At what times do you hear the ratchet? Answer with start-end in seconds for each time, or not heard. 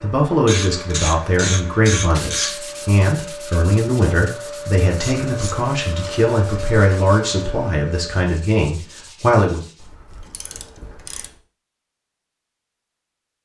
0.5-2.5, 5.0-6.3, 9.8-11.3.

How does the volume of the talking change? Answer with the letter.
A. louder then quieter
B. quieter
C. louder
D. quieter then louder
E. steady
E.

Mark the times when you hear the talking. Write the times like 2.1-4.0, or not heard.
0.0-9.7.